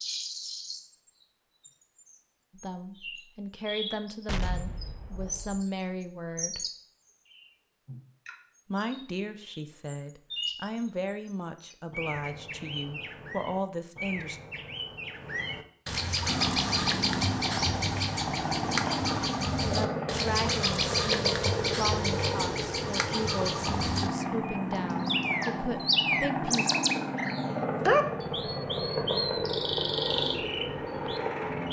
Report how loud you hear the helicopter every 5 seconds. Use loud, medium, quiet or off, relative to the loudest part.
off, off, off, loud, loud, loud, loud.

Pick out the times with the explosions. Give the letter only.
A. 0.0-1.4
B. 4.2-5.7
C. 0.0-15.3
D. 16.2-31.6
B.